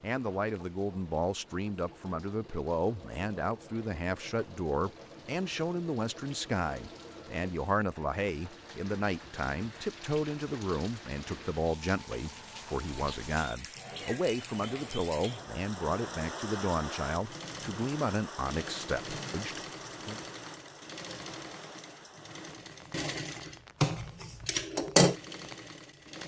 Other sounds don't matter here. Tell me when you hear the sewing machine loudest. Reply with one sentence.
The loudest moment of the sewing machine is at 25 seconds.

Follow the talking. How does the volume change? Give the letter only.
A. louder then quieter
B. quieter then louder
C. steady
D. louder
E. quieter
C.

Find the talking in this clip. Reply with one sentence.
The talking can be heard from 0.0 to 20.2 s.